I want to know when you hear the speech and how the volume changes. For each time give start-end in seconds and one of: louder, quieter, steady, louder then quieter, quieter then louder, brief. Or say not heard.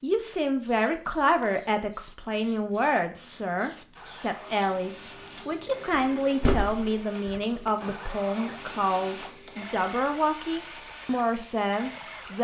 0.0-12.3 steady.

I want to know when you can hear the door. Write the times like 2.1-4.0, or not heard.
5.9-8.0.